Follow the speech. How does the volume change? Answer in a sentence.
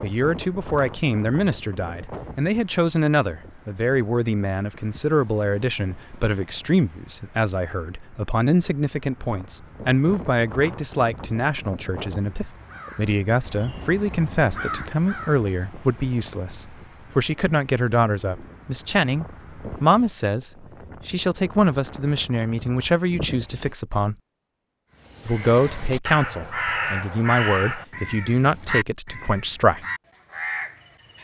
The loudness of the speech stays about the same.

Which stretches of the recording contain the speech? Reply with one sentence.
You can hear the speech from 0.0 to 24.1 s and from 25.2 to 29.9 s.